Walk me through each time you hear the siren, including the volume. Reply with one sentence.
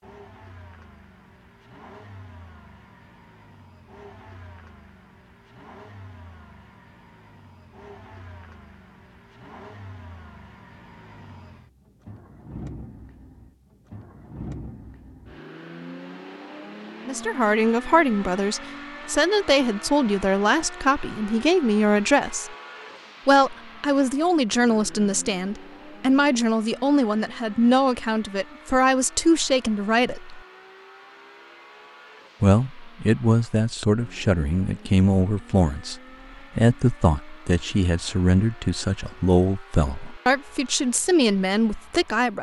You can't hear the siren here.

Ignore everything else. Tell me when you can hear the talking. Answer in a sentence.
You can hear the talking from 17.1 to 22.6 s, from 23.2 to 30.4 s and from 32.4 to 42.3 s.